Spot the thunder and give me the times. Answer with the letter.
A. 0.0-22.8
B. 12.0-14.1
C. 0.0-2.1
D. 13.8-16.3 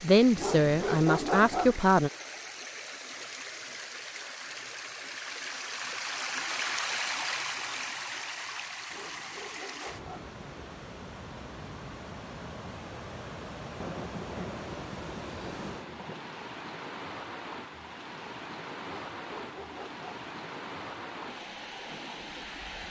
D.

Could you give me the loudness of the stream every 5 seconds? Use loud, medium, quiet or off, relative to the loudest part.
medium, loud, medium, medium, medium.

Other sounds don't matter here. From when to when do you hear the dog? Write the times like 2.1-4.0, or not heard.
0.3-1.8, 8.9-10.2, 18.9-20.1.